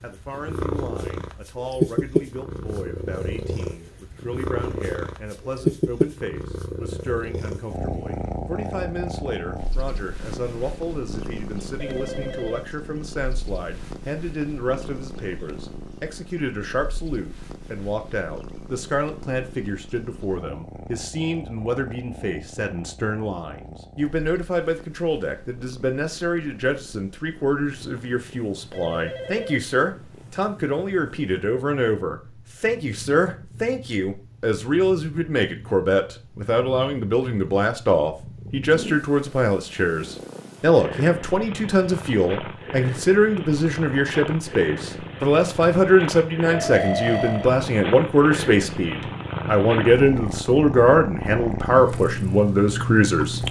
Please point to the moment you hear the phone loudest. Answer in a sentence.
The volume of the phone peaks at 47 seconds.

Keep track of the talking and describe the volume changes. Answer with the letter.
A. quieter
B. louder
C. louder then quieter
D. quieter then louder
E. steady
B.